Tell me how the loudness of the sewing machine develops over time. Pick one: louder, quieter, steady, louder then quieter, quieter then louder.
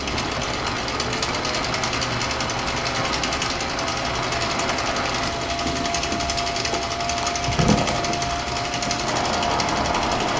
steady.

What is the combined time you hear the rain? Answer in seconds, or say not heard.
10 s.